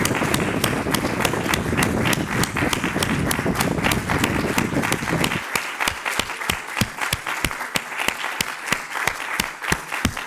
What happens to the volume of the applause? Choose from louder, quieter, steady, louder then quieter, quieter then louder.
steady.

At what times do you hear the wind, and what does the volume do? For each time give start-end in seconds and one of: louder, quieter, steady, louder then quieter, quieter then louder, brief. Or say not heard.
0.0-5.5 steady.